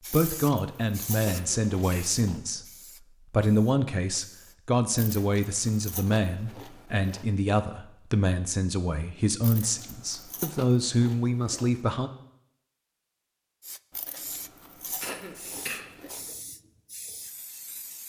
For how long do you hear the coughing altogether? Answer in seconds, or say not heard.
2 s.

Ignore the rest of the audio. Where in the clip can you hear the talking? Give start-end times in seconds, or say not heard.
0.1-2.6, 3.3-12.1.